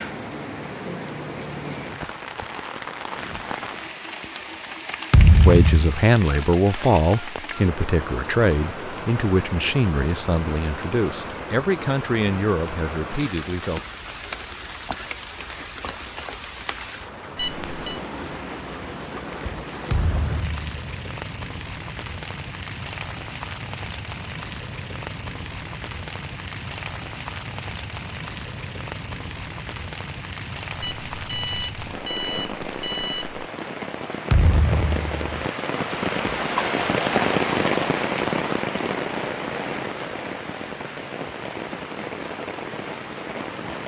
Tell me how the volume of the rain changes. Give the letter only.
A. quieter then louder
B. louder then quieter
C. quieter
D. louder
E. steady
D.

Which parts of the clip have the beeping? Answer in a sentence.
The beeping can be heard from 17.4 to 18.0 s and from 30.8 to 33.4 s.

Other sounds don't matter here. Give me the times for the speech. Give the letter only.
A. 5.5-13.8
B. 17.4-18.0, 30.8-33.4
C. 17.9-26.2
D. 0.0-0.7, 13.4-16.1
A.